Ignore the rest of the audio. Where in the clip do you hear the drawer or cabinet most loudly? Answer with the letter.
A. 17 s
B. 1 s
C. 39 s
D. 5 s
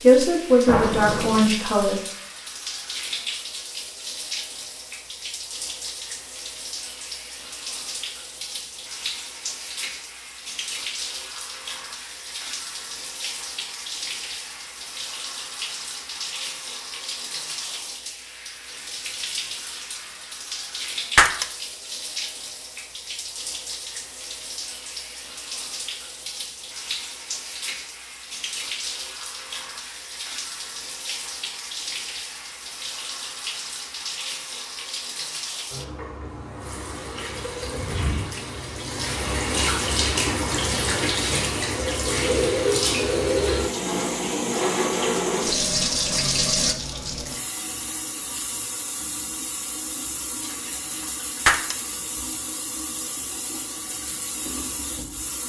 B.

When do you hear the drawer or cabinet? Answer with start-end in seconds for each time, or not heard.
0.7-1.4, 37.6-38.3.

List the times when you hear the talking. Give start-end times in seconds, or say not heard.
0.0-2.0.